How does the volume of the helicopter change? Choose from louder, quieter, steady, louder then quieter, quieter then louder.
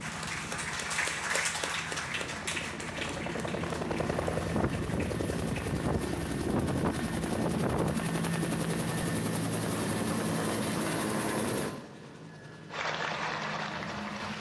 louder then quieter.